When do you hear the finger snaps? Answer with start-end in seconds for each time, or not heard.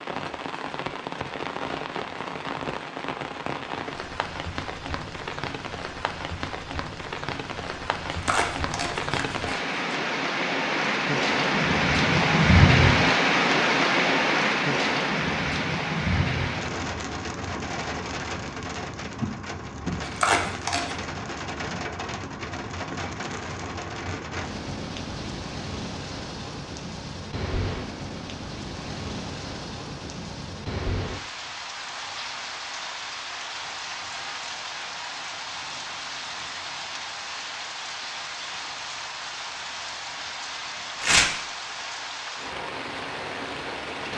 not heard.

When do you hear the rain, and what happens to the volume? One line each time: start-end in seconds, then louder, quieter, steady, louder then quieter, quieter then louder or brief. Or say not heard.
0.0-44.1 louder then quieter.